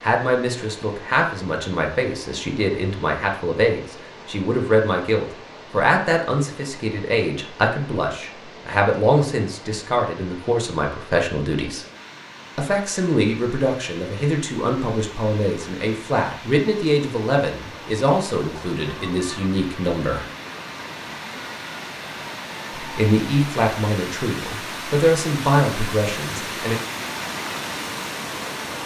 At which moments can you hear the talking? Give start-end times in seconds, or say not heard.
0.0-11.8, 12.6-20.2, 22.8-26.8.